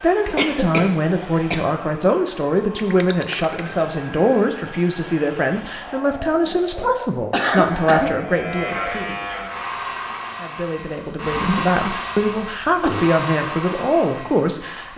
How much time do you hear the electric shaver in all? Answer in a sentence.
The electric shaver can be heard for 2 seconds in total.